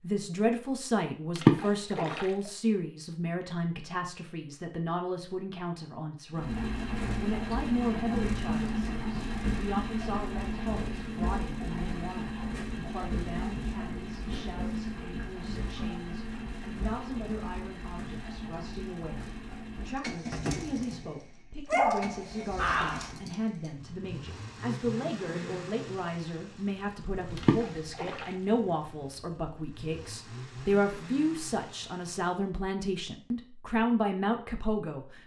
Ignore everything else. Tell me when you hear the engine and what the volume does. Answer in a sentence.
You can hear the engine from 6.3 to 32.5 s, getting quieter.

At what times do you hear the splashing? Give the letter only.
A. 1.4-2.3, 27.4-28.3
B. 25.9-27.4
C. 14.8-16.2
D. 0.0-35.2
A.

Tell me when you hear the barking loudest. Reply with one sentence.
The loudest moment of the barking is at 22 seconds.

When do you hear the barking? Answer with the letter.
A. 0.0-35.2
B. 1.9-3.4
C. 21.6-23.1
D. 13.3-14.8
C.